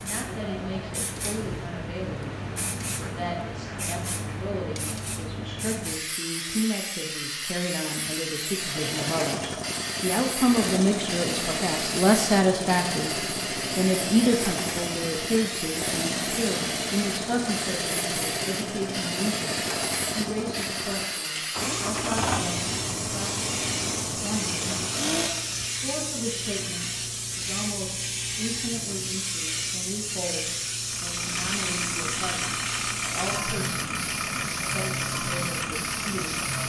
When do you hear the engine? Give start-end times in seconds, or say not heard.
8.5-25.8, 30.8-36.6.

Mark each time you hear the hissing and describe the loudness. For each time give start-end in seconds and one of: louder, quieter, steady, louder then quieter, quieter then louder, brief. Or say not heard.
0.0-36.6 steady.